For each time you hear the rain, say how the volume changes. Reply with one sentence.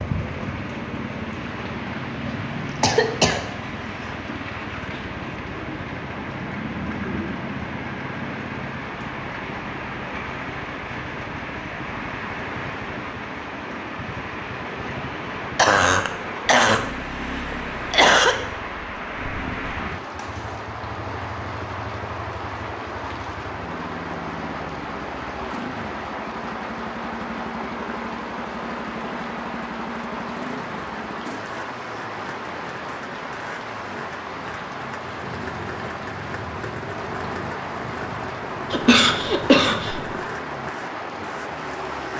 The rain can be heard from 0.0 to 42.1 s, at a steady volume.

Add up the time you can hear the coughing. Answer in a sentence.
You can hear the coughing for 5 seconds altogether.